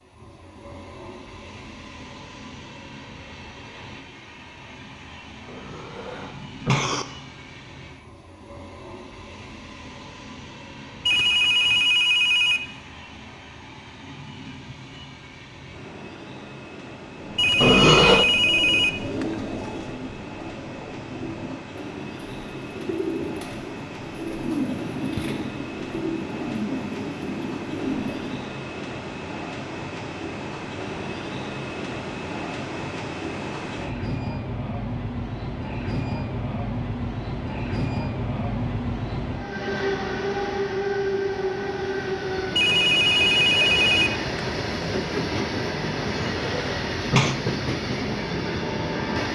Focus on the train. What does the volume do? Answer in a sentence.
The loudness of the train goes up.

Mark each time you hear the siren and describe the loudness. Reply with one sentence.
You can't hear the siren here.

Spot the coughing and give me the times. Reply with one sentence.
The coughing can be heard from 5.5 to 7.0 s, from 17.6 to 18.2 s and from 46.0 to 47.4 s.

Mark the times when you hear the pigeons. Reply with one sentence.
The pigeons can be heard from 17.1 to 28.5 s.